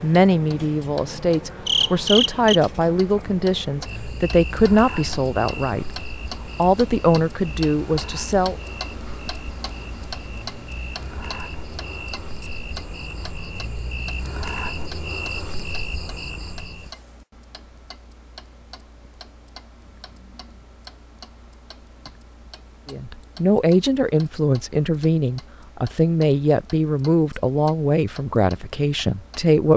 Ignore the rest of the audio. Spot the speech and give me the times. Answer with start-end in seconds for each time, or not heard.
0.0-6.0, 6.5-8.6, 22.9-29.7.